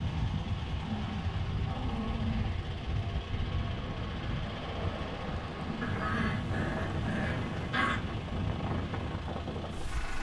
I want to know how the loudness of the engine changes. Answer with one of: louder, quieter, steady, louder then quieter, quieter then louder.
steady.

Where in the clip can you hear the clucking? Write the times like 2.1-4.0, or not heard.
not heard.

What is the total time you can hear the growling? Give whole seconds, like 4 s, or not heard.
4 s.